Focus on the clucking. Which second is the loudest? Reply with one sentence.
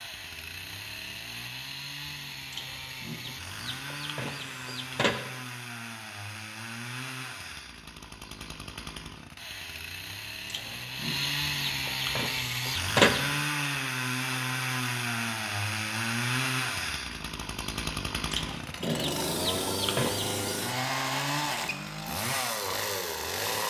The volume of the clucking peaks at 13 seconds.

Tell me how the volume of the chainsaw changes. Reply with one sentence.
The loudness of the chainsaw goes up.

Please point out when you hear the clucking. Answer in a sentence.
You can hear the clucking from 2.5 to 5.2 s, from 10.4 to 13.3 s and from 18.3 to 20.6 s.